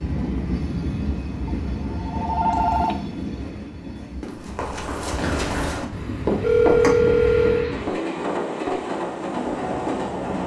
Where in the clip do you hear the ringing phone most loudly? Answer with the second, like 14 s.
7 s.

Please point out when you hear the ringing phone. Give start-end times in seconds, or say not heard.
1.4-3.0, 5.9-7.7.